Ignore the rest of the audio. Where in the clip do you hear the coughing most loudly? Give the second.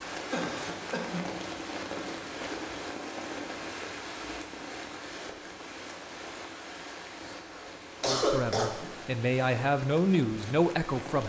8 s.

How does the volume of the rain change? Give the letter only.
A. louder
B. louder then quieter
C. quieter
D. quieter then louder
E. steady
C.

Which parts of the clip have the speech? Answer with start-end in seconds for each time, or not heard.
8.1-11.2.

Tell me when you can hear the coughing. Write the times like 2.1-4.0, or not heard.
0.3-1.2, 7.2-8.9.